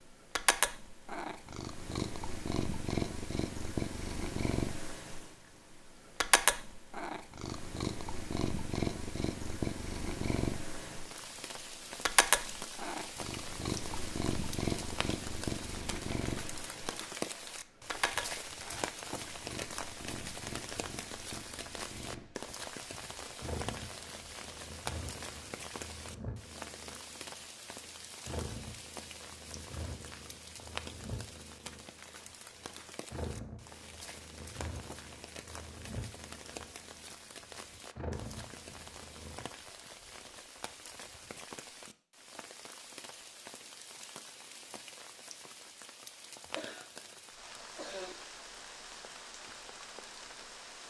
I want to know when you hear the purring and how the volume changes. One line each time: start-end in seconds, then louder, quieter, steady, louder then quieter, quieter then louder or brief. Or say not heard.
0.1-39.5 quieter.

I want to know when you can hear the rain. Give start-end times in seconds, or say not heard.
10.9-50.8.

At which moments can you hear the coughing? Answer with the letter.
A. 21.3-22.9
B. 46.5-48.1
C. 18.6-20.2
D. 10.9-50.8
B.